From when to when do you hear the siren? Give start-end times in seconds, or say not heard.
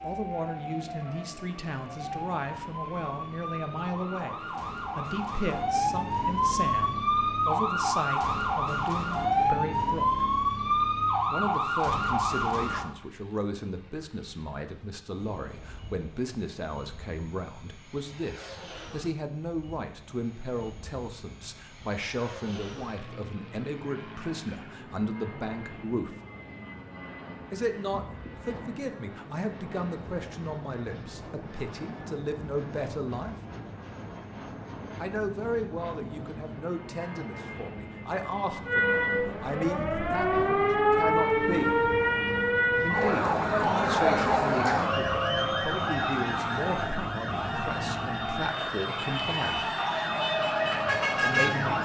0.0-12.8, 38.6-51.7.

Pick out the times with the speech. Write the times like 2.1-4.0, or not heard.
0.0-10.2, 11.3-26.1, 27.5-33.4, 35.0-41.8, 42.8-49.7, 51.1-51.7.